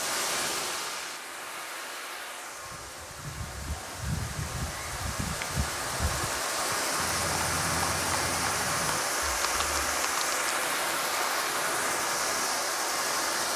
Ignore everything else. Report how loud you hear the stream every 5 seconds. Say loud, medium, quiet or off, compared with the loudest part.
medium, loud, loud.